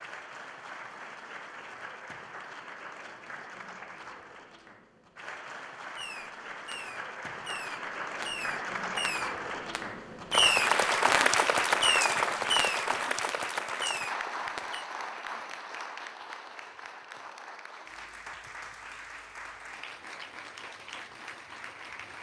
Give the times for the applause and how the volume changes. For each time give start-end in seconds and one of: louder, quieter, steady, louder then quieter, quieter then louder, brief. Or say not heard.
0.0-22.1 louder then quieter.